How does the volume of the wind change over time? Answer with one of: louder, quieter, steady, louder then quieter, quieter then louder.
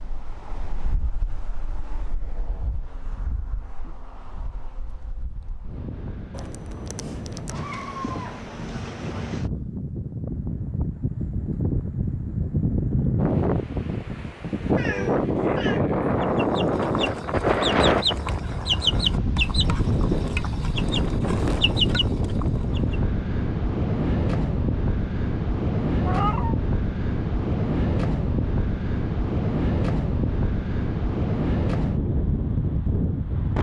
louder.